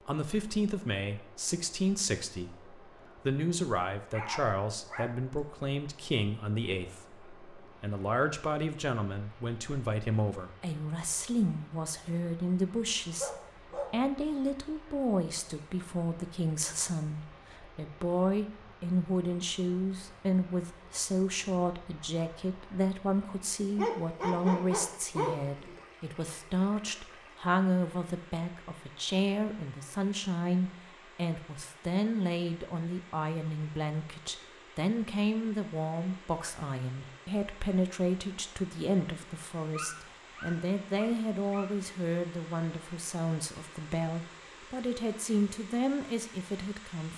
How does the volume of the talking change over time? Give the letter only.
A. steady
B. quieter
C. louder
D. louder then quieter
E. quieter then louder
A.